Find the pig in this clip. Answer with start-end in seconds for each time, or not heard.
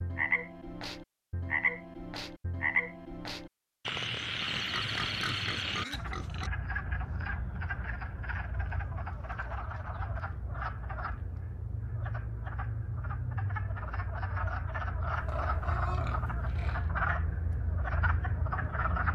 4.5-6.5, 15.1-16.9.